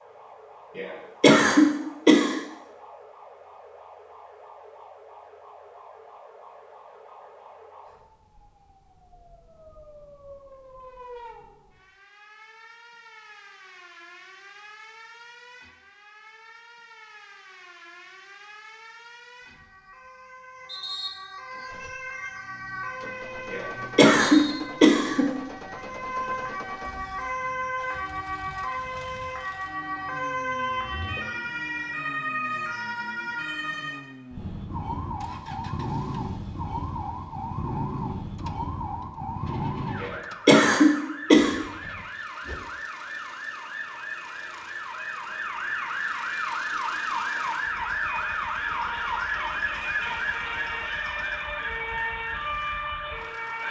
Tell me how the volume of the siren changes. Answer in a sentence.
The volume of the siren goes up.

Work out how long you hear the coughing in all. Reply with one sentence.
You can hear the coughing for 5 seconds altogether.